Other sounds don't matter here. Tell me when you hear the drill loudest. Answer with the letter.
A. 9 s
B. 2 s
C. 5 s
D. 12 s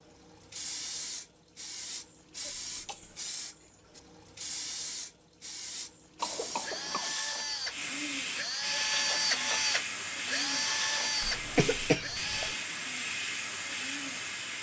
A.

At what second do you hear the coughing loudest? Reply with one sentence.
The volume of the coughing peaks at 12 seconds.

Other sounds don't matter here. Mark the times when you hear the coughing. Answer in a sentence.
The coughing can be heard from 2.6 to 3.2 s, from 6.2 to 7.2 s and from 11.2 to 12.6 s.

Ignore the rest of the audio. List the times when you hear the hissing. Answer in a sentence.
The hissing can be heard from 0.1 to 14.5 s.